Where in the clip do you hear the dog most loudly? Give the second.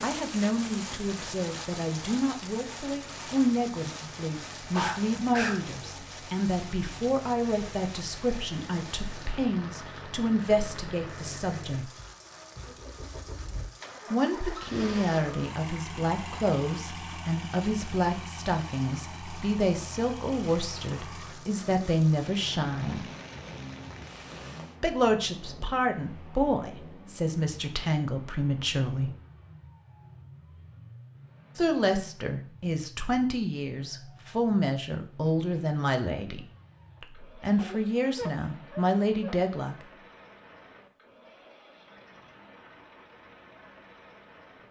5 s.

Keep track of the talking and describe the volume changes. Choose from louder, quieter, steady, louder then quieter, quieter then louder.
steady.